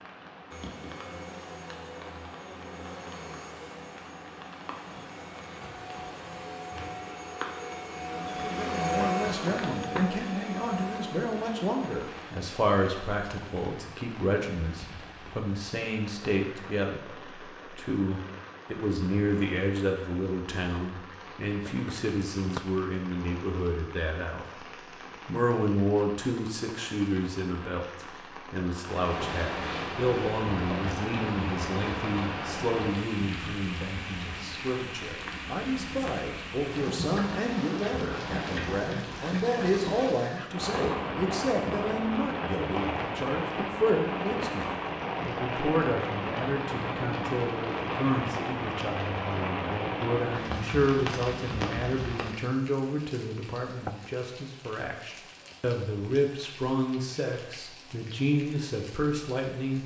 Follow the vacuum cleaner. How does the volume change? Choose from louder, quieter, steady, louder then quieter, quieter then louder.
louder then quieter.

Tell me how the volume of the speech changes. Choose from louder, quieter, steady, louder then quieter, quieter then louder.
steady.